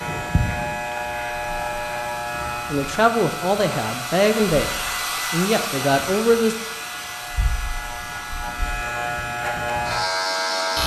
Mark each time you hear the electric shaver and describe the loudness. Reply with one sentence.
The electric shaver can be heard from 0.0 to 10.8 s, getting quieter then louder.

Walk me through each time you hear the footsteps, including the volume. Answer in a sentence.
You can't hear the footsteps here.